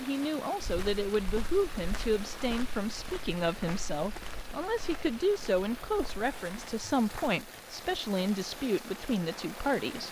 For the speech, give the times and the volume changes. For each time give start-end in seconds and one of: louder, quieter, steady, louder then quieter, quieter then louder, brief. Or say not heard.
0.0-10.0 steady.